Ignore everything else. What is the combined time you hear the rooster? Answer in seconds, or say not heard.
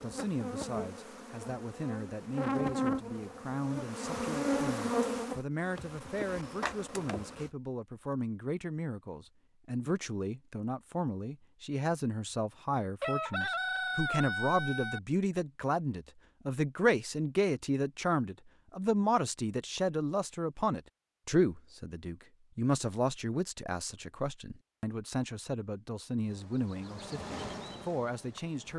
2 s.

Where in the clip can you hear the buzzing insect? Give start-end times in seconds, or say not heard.
0.0-7.5, 26.2-28.7.